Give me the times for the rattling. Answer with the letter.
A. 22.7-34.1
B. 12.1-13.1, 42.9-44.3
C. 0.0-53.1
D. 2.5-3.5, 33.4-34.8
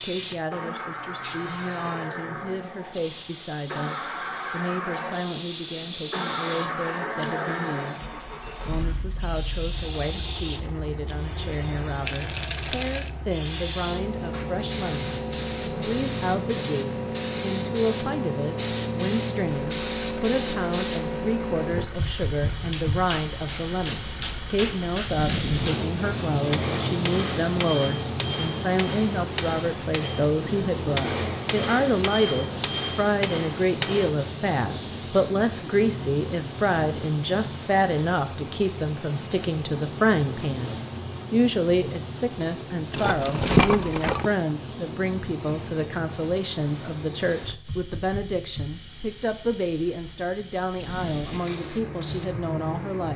B.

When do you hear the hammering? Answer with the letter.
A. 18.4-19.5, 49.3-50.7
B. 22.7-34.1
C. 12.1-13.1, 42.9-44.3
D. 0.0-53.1
B.